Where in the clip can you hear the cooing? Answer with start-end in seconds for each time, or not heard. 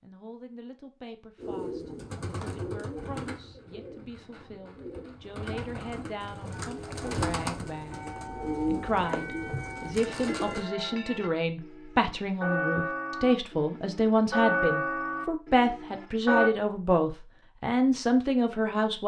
1.4-10.7.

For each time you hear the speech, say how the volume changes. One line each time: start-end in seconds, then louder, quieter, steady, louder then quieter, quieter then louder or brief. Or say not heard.
0.0-19.0 louder.